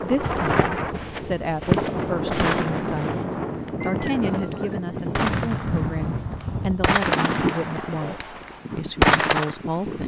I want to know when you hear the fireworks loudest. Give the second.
9 s.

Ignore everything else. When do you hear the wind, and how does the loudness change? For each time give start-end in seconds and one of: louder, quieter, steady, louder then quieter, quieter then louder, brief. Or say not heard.
0.0-10.0 quieter.